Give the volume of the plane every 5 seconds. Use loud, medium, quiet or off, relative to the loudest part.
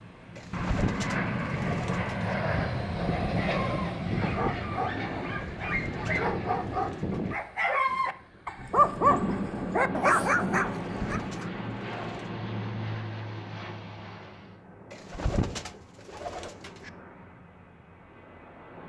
loud, medium, medium, quiet.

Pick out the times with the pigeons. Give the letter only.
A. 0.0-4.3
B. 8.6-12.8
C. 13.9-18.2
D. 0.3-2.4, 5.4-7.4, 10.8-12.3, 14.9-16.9
D.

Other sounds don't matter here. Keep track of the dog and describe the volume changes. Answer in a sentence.
The volume of the dog goes up.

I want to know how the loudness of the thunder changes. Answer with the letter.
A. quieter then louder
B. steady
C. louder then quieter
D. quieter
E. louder
D.